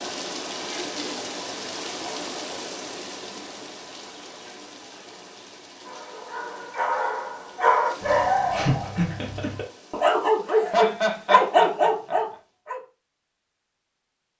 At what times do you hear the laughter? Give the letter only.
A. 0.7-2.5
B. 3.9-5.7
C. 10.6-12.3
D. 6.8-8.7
C.